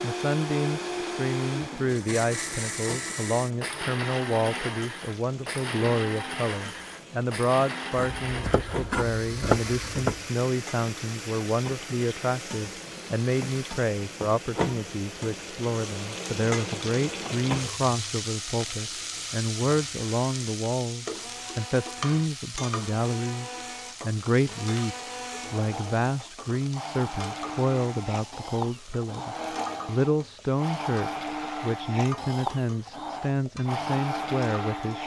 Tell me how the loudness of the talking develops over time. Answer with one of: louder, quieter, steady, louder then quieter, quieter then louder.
steady.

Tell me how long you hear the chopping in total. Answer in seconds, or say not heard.
2 s.